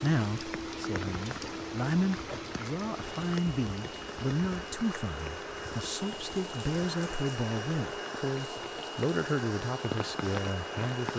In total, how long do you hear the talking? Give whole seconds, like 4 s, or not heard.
11 s.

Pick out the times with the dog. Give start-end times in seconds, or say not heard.
not heard.